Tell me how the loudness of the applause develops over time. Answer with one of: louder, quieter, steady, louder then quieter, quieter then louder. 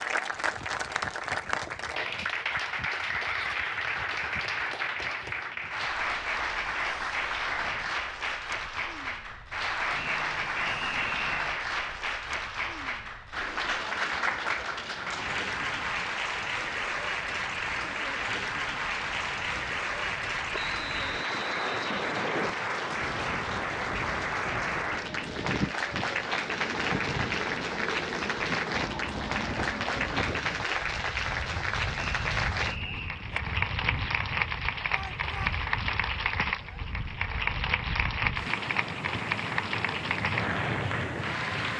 steady.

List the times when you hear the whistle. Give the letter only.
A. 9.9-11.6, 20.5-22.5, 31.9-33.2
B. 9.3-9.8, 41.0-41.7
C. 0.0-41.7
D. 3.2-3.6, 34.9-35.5
A.